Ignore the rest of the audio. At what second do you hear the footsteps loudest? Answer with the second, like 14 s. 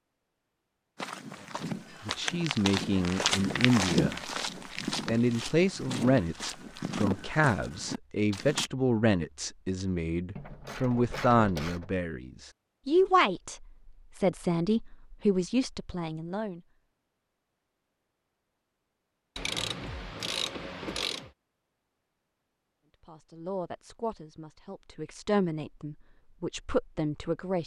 4 s.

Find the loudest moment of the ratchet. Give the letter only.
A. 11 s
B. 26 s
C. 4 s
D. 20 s
D.